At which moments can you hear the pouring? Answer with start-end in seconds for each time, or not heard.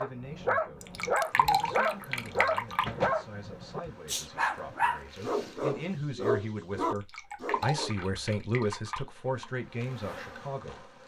0.8-2.9, 7.0-9.4.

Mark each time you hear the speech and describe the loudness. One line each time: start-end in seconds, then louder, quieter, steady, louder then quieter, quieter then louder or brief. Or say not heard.
0.0-10.9 louder.